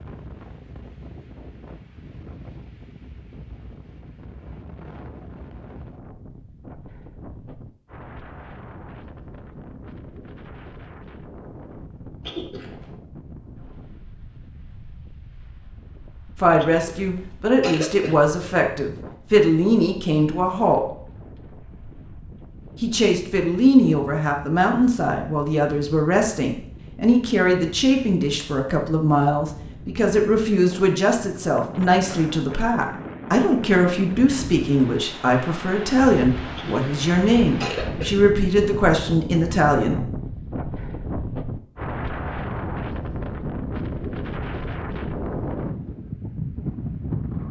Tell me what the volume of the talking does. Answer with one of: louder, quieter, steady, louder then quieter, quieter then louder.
steady.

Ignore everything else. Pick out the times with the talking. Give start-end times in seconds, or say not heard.
16.4-20.8, 22.8-40.0.